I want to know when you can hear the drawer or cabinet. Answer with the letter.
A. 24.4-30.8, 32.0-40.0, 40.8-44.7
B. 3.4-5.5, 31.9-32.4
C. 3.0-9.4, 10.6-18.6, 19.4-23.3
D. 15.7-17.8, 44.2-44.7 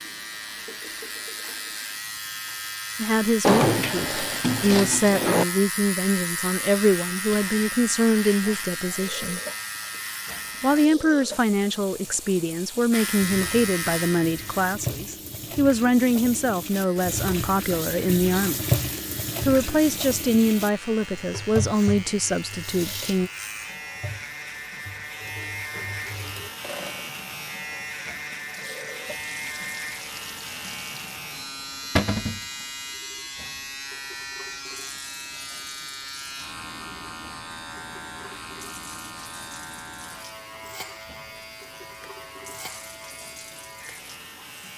B.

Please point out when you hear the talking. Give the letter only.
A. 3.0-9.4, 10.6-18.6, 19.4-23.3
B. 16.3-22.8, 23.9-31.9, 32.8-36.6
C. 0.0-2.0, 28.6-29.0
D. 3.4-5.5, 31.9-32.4
A.